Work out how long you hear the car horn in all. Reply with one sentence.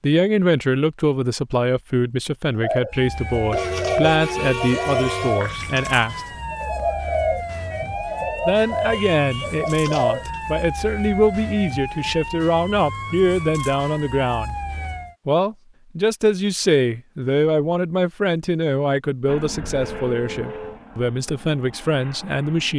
You can hear the car horn for 4 seconds altogether.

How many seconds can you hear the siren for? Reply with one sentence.
The siren can be heard for 12 seconds in total.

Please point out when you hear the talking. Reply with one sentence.
The talking can be heard from 0.0 to 6.2 s, from 8.4 to 14.6 s and from 15.2 to 22.7 s.